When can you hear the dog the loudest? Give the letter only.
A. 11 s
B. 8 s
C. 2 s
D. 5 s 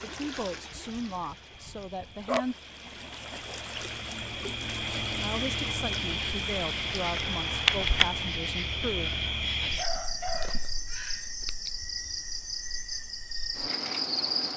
C.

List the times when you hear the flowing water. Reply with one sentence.
You can hear the flowing water from 0.0 to 8.3 s.